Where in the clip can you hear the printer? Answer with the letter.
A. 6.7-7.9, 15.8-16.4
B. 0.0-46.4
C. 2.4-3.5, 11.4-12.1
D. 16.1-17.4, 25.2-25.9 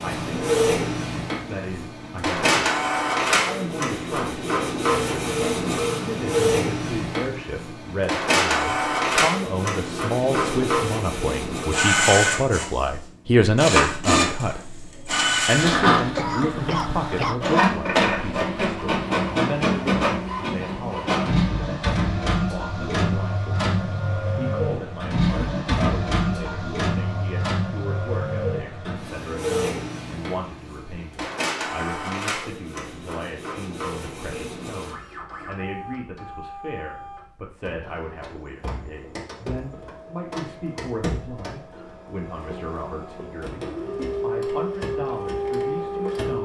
B.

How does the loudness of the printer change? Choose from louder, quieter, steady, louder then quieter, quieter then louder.
quieter.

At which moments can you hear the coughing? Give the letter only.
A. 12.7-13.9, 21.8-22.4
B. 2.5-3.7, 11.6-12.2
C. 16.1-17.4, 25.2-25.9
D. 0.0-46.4
C.